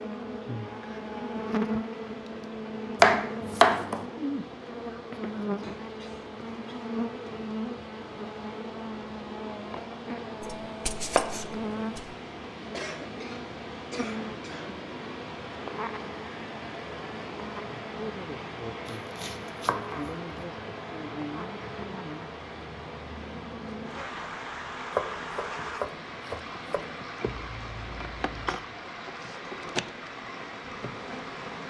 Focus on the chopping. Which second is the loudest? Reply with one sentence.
The loudest moment of the chopping is at 3 seconds.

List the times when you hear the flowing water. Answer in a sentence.
The flowing water can be heard from 0.0 to 31.6 s.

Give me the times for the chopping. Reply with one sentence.
You can hear the chopping from 3.0 to 4.0 s, from 10.4 to 12.1 s, from 18.9 to 20.4 s and from 24.9 to 26.9 s.